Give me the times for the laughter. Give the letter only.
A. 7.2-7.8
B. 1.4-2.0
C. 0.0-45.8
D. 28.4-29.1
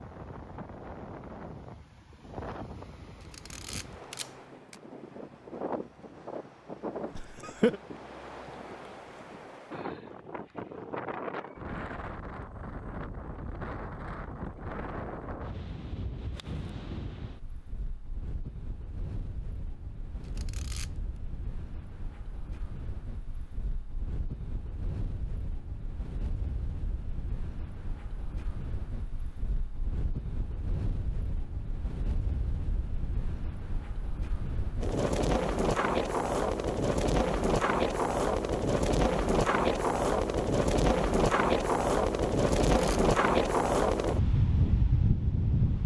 A.